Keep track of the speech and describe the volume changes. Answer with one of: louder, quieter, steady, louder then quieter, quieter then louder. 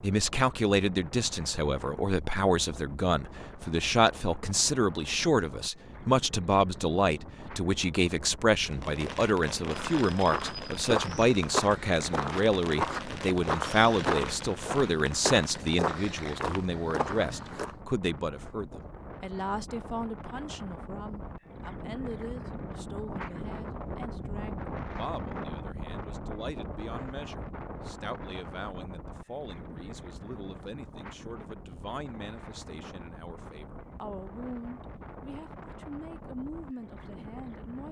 quieter.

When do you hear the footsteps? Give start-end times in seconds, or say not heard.
9.7-17.8.